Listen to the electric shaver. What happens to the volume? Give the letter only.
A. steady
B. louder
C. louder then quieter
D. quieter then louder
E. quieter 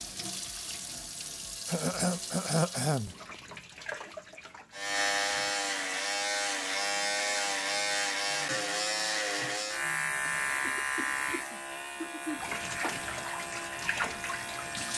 E.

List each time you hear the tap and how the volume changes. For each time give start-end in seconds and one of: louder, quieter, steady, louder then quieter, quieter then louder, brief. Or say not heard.
0.0-5.5 quieter
12.3-14.9 brief.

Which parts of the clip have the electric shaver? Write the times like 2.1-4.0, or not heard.
4.7-14.9.